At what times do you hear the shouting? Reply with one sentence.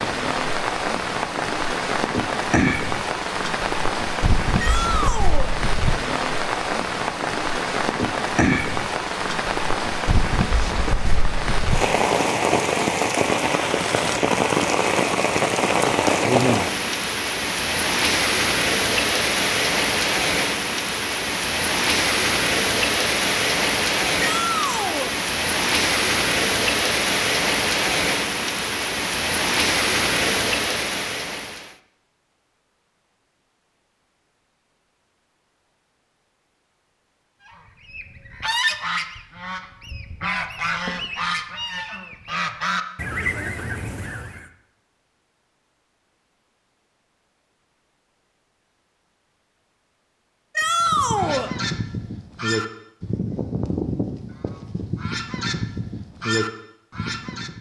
You can hear the shouting from 4.5 to 5.5 s, from 24.2 to 25.1 s and from 50.5 to 51.5 s.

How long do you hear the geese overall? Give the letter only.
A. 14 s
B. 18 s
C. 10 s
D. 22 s
A.